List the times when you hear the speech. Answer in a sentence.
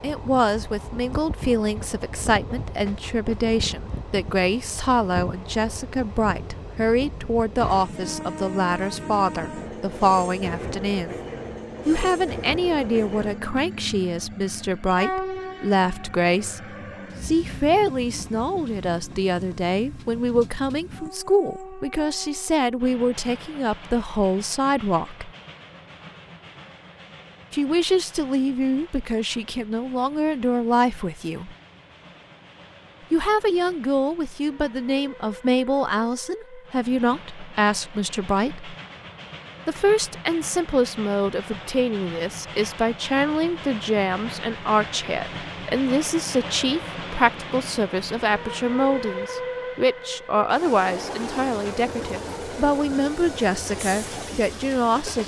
You can hear the speech from 0.0 to 11.2 s, from 11.8 to 25.3 s, from 27.5 to 31.6 s, from 33.1 to 38.8 s and from 39.6 to 55.2 s.